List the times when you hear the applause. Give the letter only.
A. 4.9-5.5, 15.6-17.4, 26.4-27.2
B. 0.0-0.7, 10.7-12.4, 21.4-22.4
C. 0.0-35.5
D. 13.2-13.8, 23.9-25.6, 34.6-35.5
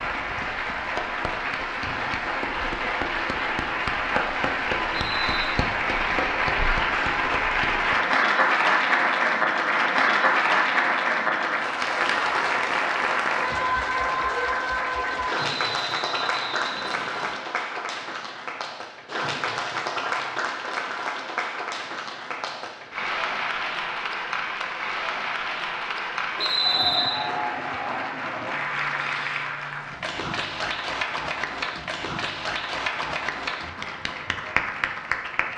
C.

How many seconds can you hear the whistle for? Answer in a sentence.
The whistle can be heard for 3 seconds in total.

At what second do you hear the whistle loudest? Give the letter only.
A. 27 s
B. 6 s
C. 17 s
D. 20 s
A.